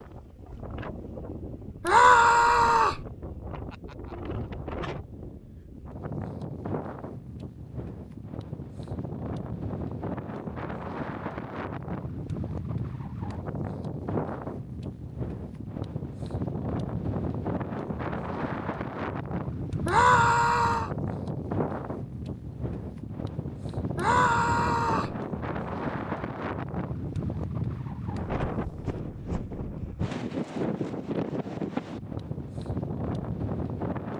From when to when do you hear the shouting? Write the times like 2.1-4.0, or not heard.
1.9-3.0, 19.9-20.9, 23.9-25.1.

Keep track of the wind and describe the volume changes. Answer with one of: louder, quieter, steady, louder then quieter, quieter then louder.
louder.